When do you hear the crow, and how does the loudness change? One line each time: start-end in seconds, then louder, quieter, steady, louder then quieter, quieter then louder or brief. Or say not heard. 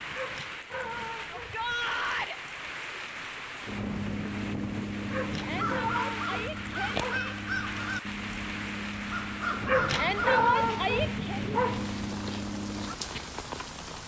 3.6-12.9 steady.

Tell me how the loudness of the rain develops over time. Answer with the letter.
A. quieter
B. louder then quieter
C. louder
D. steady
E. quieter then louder
D.